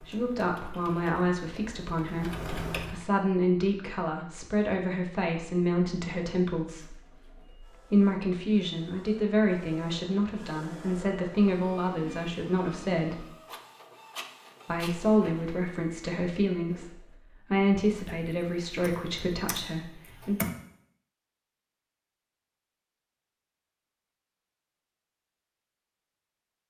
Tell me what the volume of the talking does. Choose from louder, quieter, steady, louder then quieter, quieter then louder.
steady.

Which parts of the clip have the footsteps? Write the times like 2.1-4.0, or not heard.
not heard.